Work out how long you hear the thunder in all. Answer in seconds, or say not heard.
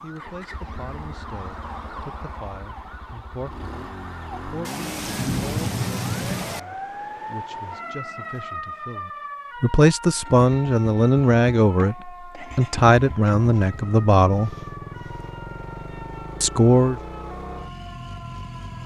2 s.